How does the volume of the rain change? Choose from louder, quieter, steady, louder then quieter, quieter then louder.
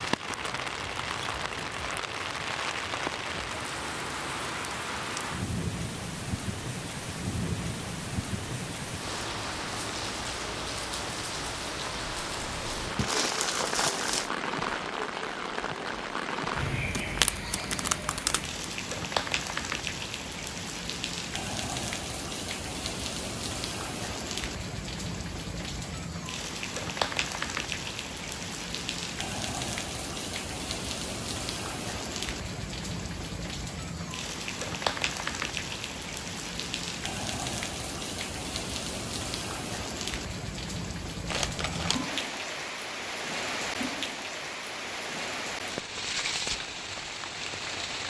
steady.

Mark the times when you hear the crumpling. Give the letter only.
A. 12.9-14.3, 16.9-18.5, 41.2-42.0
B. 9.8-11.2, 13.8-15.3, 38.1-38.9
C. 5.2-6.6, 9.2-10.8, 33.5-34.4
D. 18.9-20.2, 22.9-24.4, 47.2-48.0
A.